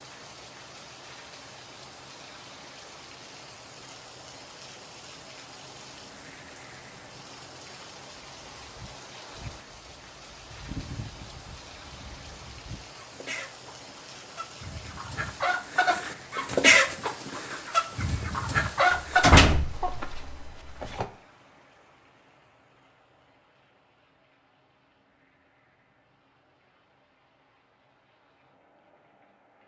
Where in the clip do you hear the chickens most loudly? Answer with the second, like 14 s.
17 s.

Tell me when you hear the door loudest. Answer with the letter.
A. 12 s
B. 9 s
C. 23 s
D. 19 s
D.